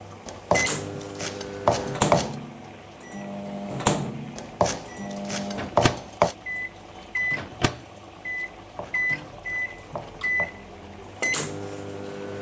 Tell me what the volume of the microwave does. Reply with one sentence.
The volume of the microwave stays about the same.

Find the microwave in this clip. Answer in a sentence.
You can hear the microwave from 0.0 to 12.3 s.